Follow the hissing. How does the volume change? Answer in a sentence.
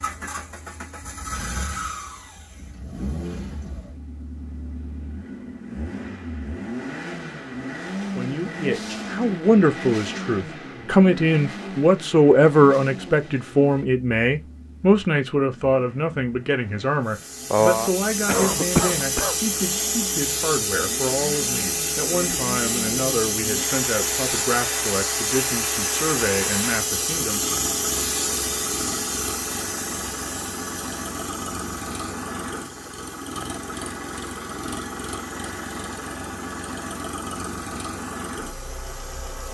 The volume of the hissing goes down.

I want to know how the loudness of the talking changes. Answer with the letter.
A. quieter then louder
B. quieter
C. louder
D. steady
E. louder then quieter
B.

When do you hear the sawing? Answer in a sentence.
You can't hear the sawing here.